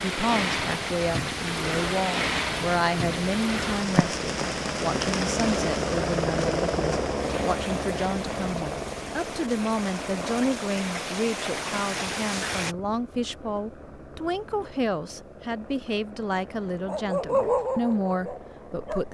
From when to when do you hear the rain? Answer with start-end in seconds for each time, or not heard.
0.0-12.8.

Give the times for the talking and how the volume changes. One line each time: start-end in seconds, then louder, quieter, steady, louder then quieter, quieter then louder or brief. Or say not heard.
0.0-19.1 steady.